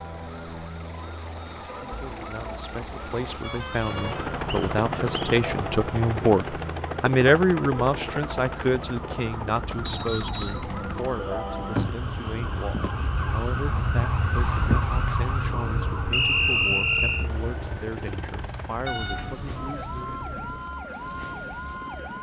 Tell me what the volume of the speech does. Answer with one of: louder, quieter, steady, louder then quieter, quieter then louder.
louder then quieter.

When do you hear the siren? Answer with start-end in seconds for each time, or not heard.
0.0-22.1.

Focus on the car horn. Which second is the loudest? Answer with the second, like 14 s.
19 s.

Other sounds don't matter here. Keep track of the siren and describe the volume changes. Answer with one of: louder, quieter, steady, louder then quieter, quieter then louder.
louder then quieter.